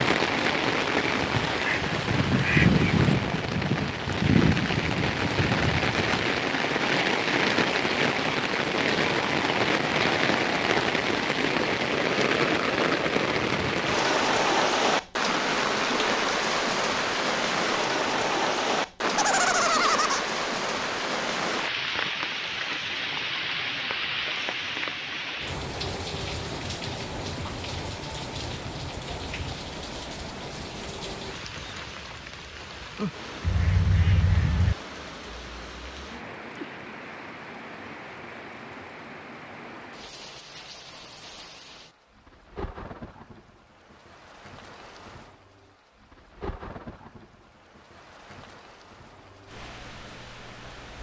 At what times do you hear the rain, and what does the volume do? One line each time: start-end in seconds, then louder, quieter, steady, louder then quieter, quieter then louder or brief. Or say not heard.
0.0-50.9 quieter.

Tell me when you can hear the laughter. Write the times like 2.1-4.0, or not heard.
19.0-20.2.